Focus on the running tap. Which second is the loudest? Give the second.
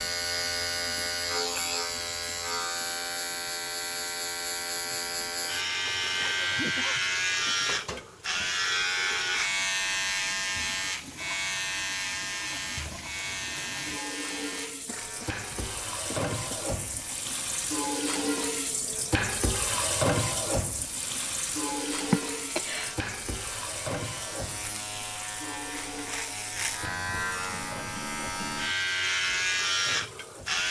20 s.